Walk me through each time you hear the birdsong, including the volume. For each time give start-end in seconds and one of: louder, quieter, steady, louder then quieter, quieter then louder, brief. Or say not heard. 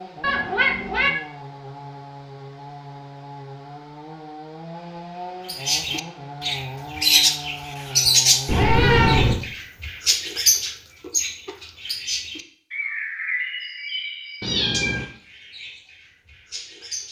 5.5-17.0 quieter.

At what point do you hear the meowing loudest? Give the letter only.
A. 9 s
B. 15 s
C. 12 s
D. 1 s
A.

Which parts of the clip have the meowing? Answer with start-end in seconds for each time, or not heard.
0.2-1.1, 8.4-9.4, 14.4-15.1.